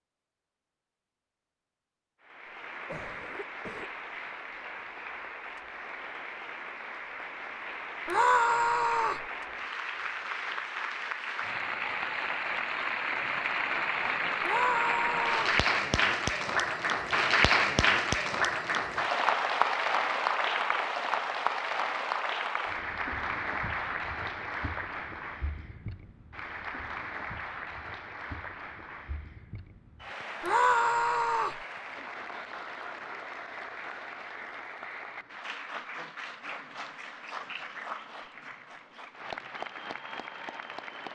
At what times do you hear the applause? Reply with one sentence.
You can hear the applause from 2.2 to 41.1 s.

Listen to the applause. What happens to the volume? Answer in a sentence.
The loudness of the applause goes up, then down.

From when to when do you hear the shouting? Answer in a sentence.
The shouting can be heard from 8.1 to 9.2 s, from 14.4 to 15.6 s and from 30.4 to 31.6 s.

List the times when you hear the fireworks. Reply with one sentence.
You can't hear the fireworks here.